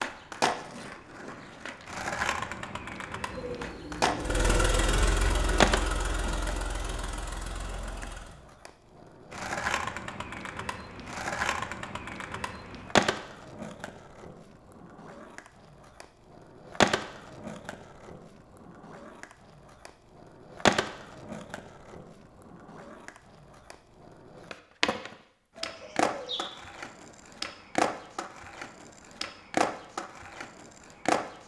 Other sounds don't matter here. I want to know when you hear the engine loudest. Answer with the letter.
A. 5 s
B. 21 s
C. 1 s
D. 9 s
A.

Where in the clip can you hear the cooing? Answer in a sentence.
You can hear the cooing from 3.3 to 5.7 s and from 25.6 to 26.4 s.